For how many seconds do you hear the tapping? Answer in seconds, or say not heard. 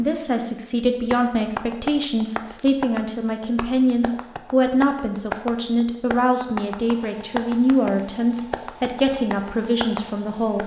10 s.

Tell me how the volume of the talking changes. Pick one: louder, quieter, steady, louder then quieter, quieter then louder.
steady.